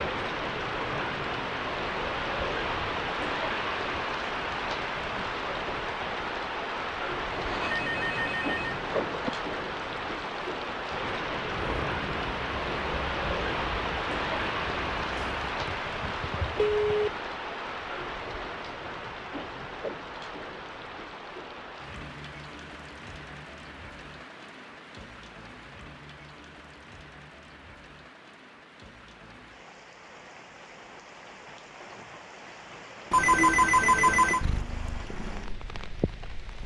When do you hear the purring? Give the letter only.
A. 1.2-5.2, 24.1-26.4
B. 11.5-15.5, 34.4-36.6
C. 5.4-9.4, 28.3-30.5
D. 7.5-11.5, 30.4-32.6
B.